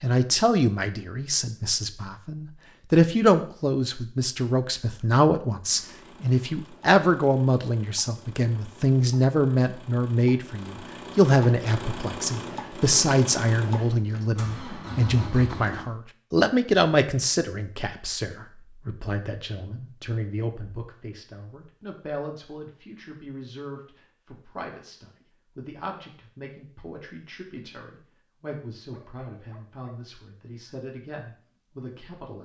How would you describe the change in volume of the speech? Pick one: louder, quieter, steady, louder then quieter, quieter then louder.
quieter.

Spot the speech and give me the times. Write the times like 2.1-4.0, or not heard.
0.0-32.4.